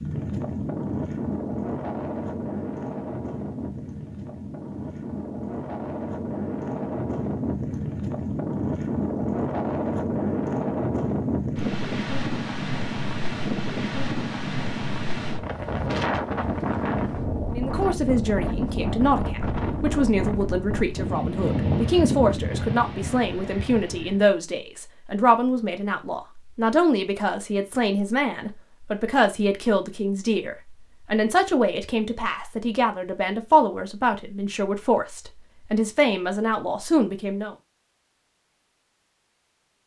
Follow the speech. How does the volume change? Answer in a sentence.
The volume of the speech stays about the same.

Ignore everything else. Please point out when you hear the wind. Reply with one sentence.
You can hear the wind from 0.0 to 24.2 s.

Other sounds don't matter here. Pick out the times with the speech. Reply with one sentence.
You can hear the speech from 17.5 to 37.5 s.